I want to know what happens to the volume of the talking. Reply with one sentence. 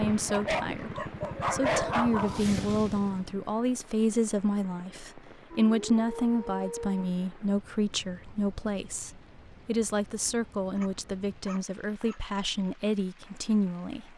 The volume of the talking stays about the same.